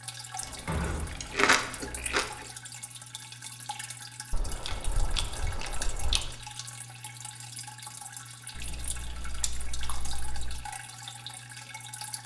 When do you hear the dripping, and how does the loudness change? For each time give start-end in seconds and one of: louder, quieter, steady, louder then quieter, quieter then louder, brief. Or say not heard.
0.0-12.2 steady.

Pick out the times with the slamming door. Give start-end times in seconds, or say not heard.
0.6-1.3.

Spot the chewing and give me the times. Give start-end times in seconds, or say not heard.
0.4-2.5, 4.3-6.4, 8.5-10.7.